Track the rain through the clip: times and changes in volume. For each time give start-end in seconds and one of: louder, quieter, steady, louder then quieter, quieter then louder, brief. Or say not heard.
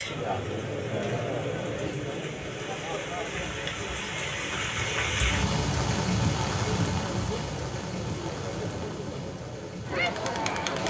0.0-10.8 louder then quieter.